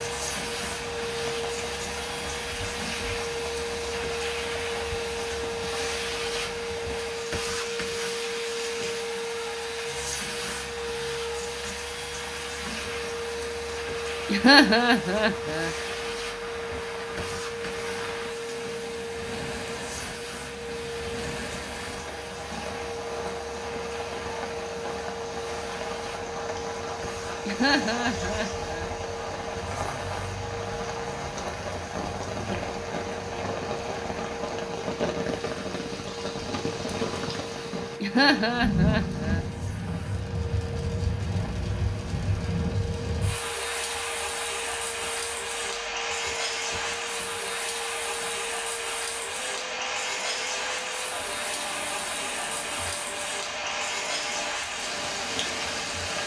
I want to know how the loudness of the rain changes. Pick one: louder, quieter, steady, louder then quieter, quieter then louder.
louder.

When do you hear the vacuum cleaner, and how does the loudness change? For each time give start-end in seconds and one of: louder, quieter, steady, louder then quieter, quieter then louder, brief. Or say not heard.
0.0-56.2 quieter.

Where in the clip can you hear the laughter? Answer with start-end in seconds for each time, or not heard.
14.2-15.7, 27.4-28.9, 38.0-39.5.